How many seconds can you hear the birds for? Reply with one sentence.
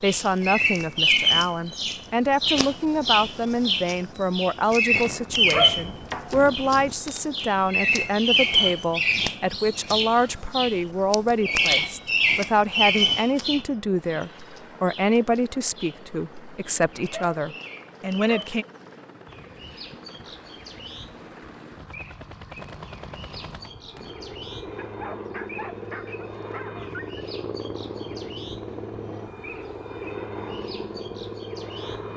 The birds can be heard for 32 seconds in total.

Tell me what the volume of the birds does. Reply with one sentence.
The volume of the birds goes down.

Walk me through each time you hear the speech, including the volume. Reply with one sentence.
You can hear the speech from 0.0 to 18.6 s, at a steady volume.